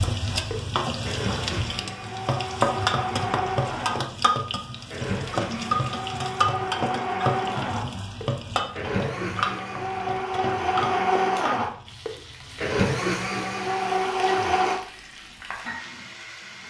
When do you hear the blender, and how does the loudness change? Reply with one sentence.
The blender can be heard from 0.0 to 14.8 s, getting louder.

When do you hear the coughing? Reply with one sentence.
You can't hear the coughing here.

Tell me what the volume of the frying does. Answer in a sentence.
The loudness of the frying goes down.